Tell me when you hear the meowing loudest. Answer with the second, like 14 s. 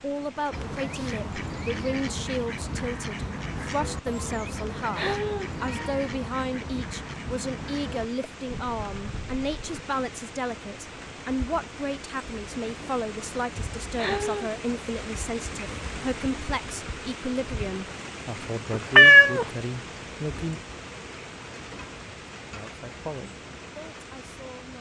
19 s.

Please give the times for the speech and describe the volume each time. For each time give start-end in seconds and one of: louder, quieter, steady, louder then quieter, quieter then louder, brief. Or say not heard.
0.0-20.6 steady
22.5-24.7 brief.